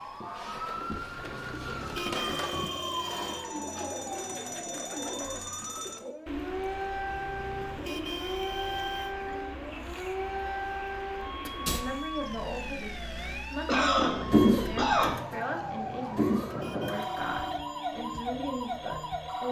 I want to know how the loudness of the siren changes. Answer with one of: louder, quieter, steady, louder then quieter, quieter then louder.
steady.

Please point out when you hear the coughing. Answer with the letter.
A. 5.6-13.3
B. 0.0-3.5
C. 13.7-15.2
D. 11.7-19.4
C.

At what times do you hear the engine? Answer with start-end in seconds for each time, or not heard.
14.2-17.6.